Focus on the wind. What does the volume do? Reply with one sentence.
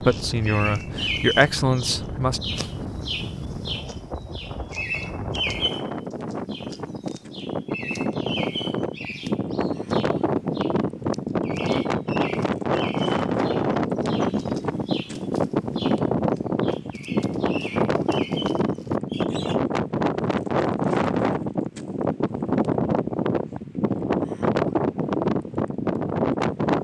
The volume of the wind goes up.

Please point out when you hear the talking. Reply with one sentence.
You can hear the talking from 0.0 to 2.4 s.